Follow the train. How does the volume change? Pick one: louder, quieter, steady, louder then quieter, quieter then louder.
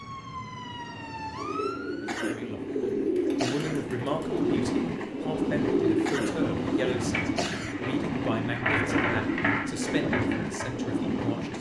louder.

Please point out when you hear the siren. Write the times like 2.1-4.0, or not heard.
0.0-2.2.